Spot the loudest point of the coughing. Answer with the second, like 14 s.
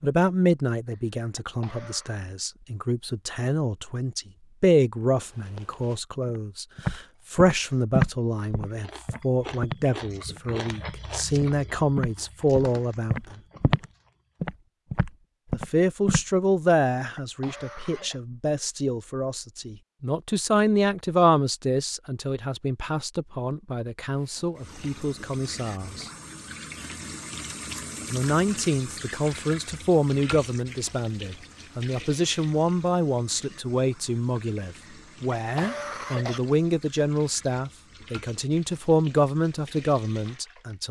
36 s.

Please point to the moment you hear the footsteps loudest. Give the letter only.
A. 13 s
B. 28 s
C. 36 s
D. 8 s
D.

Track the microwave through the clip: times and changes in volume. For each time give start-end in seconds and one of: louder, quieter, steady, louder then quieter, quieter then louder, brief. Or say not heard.
not heard.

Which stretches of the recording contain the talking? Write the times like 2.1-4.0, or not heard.
0.0-13.4, 15.5-26.1, 28.1-40.8.